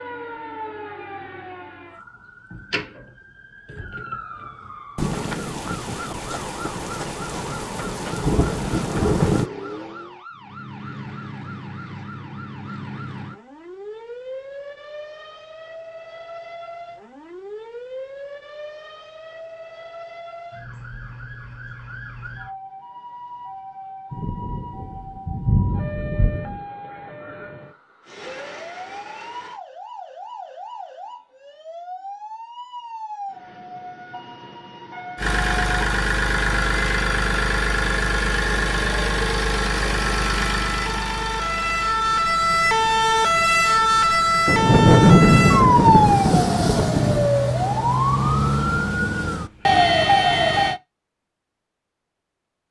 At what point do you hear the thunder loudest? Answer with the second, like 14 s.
45 s.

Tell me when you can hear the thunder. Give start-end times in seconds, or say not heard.
5.0-9.4, 24.1-26.6, 44.5-47.3.